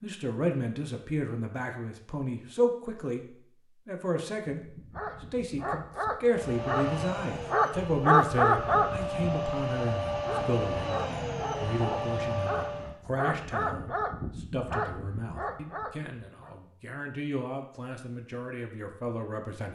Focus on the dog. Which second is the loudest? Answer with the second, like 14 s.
8 s.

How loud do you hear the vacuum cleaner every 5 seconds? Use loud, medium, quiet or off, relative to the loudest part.
off, loud, loud, off.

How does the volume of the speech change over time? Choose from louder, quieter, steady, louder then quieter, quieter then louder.
quieter.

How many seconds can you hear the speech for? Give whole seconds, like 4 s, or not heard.
20 s.